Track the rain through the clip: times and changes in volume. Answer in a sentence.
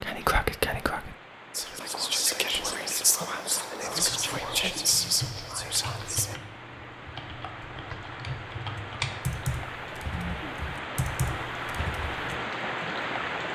The rain can be heard from 0.0 to 13.5 s, getting louder.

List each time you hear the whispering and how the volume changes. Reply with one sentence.
You can hear the whispering from 0.0 to 6.4 s, at a steady volume.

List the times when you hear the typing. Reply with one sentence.
You can hear the typing from 3.9 to 12.4 s.